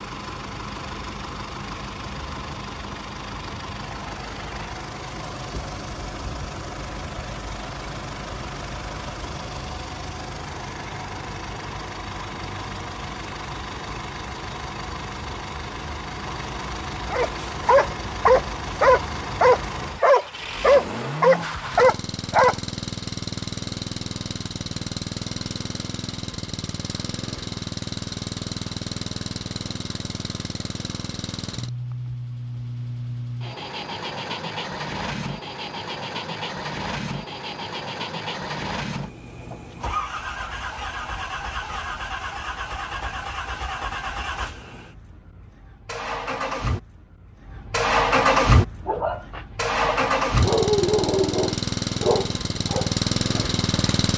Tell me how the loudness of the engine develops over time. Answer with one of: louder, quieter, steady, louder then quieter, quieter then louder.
louder.